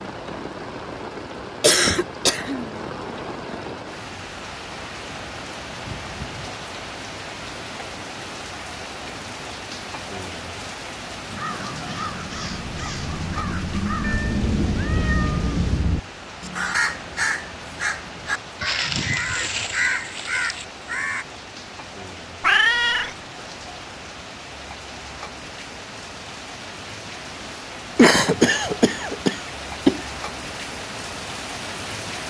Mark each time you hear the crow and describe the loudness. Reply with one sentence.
You can hear the crow from 11.2 to 21.2 s, getting louder.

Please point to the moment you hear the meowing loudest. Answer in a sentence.
The volume of the meowing peaks at 23 seconds.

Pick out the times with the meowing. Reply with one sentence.
The meowing can be heard from 5.7 to 6.5 s, from 14.0 to 15.8 s and from 22.4 to 23.1 s.